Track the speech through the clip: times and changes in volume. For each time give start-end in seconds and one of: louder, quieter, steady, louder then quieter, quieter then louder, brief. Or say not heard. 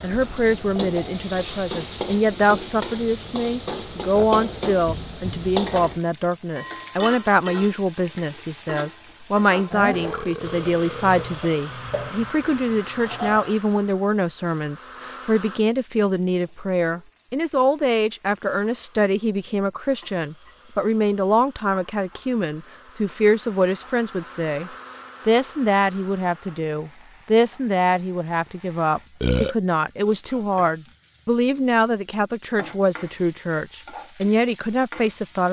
0.0-35.4 steady.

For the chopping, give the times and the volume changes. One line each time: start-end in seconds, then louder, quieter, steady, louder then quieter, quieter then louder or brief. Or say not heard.
not heard.